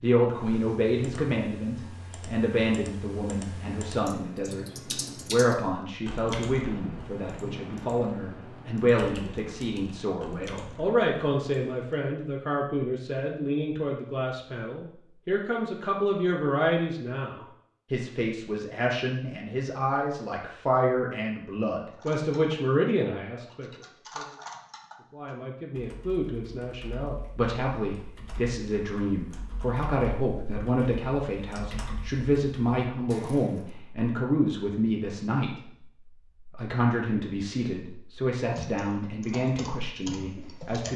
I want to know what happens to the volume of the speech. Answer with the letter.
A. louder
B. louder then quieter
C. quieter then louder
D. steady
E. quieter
D.